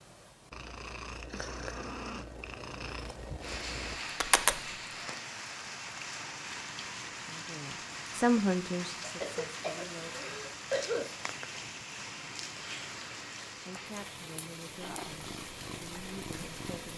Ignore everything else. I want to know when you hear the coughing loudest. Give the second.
11 s.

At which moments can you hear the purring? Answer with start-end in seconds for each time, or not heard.
0.0-5.1, 14.8-16.9.